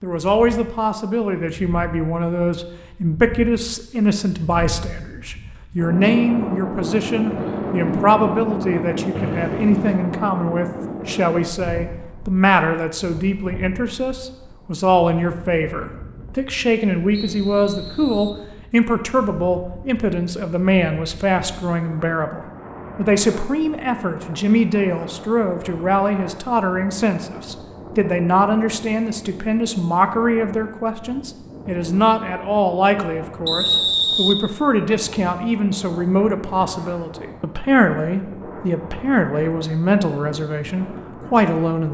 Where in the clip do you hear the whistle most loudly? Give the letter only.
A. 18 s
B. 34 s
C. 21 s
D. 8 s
B.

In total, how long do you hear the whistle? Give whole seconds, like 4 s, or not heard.
3 s.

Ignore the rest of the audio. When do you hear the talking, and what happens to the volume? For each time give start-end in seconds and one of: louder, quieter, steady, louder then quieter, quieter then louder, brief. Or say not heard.
0.0-41.8 steady.